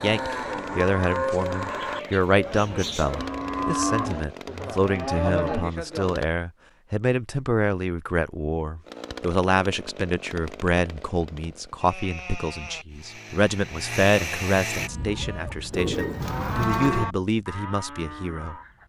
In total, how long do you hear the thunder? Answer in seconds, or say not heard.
2 s.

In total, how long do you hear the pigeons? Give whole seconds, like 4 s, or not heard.
3 s.